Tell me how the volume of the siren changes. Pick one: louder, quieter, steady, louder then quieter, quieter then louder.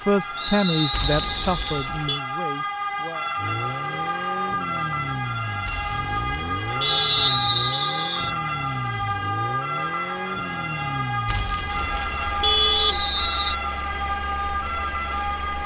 steady.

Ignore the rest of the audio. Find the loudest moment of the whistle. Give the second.
7 s.